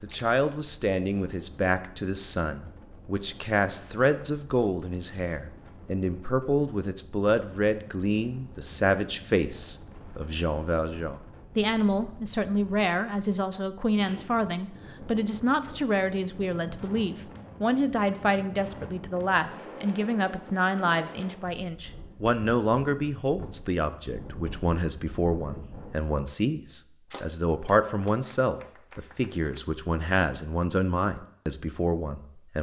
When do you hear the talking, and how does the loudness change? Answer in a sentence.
You can hear the talking from 0.0 to 32.5 s, at a steady volume.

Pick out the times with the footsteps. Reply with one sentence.
You can't hear the footsteps here.